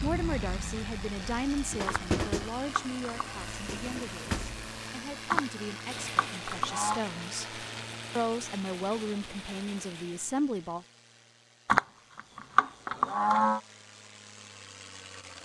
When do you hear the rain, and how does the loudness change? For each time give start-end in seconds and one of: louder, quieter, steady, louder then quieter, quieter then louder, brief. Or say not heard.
0.0-10.3 quieter.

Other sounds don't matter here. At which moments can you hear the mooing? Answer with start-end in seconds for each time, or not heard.
1.9-3.4, 5.3-7.0, 11.7-13.6.